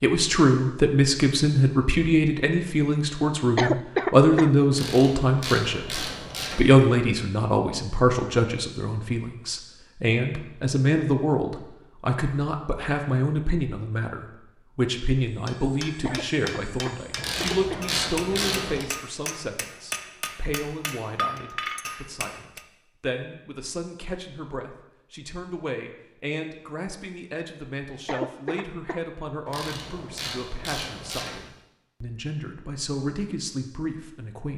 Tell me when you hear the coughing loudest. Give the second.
4 s.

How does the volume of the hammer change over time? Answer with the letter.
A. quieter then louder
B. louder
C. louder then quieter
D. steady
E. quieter
B.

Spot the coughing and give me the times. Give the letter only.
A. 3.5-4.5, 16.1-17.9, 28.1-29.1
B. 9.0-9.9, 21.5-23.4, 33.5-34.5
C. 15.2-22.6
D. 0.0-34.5
A.